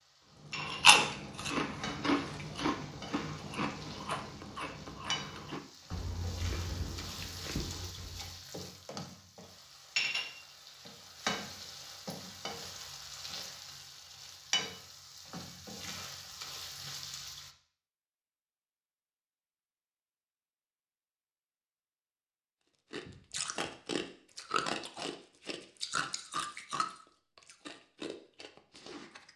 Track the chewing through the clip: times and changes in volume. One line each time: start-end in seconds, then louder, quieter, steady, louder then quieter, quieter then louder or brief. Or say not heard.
0.5-8.4 quieter
22.9-29.3 quieter.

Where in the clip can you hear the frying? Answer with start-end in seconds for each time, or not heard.
0.0-17.5.